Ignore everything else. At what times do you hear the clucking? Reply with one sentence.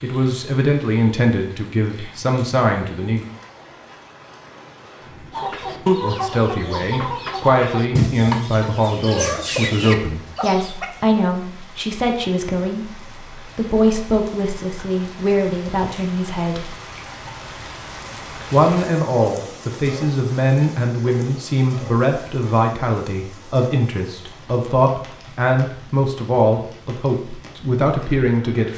The clucking can be heard from 5.3 to 10.9 s.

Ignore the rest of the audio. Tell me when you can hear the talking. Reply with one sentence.
You can hear the talking from 0.0 to 3.2 s, from 6.0 to 16.7 s and from 18.5 to 28.7 s.